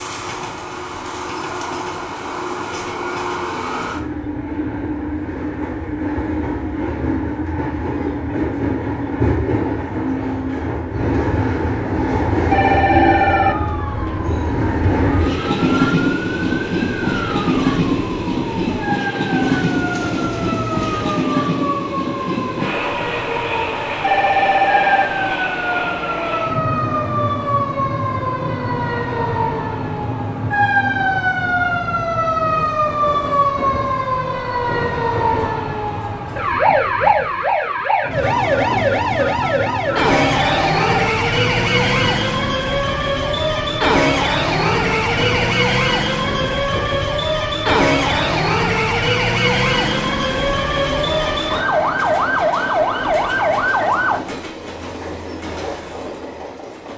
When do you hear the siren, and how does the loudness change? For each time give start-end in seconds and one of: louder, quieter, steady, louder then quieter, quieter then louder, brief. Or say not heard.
12.8-54.2 louder.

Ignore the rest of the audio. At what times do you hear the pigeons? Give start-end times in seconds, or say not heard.
19.4-21.2.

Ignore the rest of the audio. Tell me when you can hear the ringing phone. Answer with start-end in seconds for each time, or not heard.
12.5-13.6, 24.0-25.1, 40.0-41.1.